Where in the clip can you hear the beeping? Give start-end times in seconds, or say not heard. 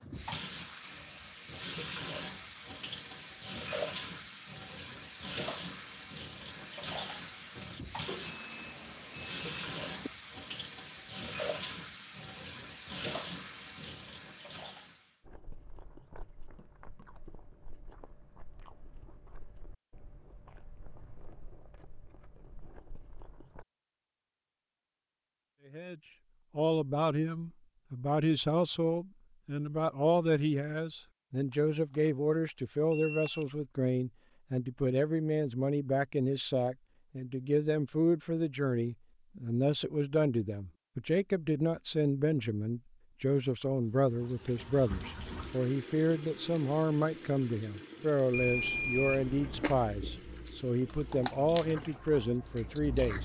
8.1-10.1, 31.5-33.5, 48.3-49.8.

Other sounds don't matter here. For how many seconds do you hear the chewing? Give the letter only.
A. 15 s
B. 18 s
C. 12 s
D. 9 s
C.